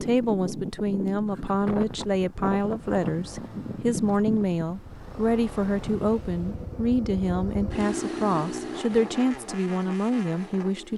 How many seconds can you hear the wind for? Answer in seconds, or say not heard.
7 s.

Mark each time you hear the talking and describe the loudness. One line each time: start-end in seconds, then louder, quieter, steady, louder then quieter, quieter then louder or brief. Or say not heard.
0.0-10.9 steady.